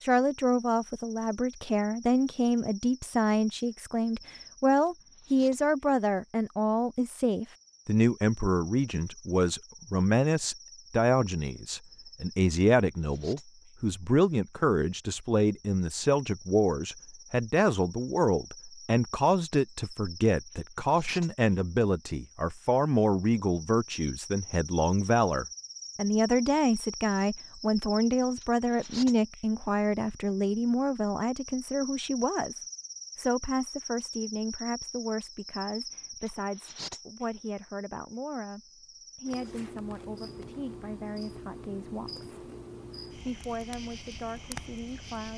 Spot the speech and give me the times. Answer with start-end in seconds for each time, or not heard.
0.0-42.2, 43.1-45.3.